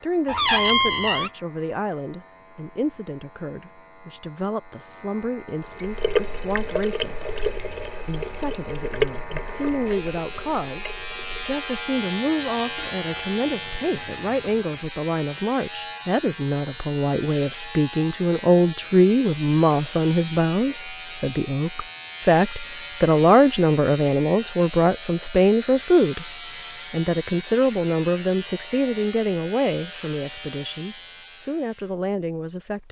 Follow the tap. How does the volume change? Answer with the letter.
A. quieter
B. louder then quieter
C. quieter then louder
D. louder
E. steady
A.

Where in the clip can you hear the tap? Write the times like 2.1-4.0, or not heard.
5.6-14.7.